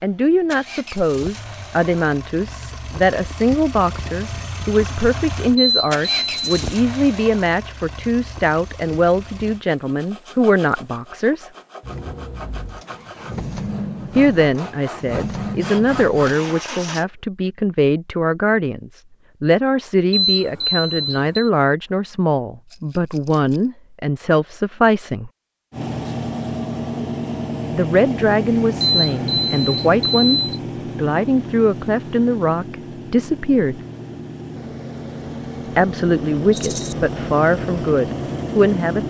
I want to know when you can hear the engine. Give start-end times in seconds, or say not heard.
0.0-9.7, 11.8-17.1, 25.7-39.0.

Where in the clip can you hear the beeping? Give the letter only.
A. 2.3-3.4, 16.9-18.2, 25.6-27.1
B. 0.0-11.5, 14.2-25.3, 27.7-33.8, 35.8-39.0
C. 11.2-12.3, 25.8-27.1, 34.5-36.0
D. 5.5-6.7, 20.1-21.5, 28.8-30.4
D.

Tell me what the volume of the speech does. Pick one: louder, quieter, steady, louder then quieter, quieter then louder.
steady.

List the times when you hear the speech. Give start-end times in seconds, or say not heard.
0.0-11.5, 14.2-25.3, 27.7-33.8, 35.8-39.0.